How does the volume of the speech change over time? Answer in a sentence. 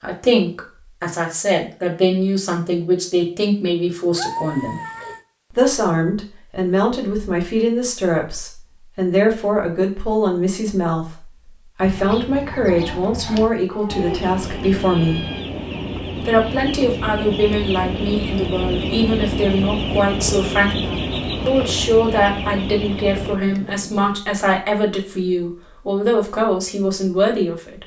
The volume of the speech stays about the same.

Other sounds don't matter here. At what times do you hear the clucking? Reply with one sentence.
You can hear the clucking from 11.8 to 23.4 s.